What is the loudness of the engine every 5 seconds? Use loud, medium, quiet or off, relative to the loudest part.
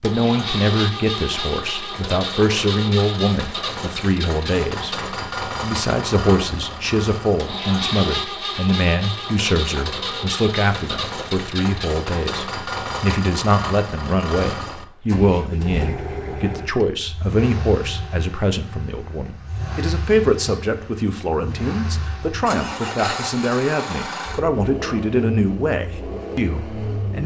loud, loud, loud, medium, loud, loud.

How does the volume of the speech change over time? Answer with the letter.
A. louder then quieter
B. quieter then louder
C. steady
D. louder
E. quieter
C.